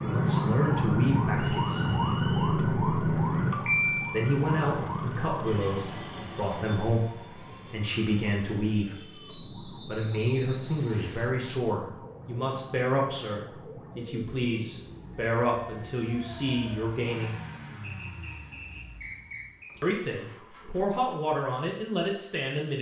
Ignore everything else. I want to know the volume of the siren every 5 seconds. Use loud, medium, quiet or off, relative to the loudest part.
loud, quiet, quiet, quiet, off.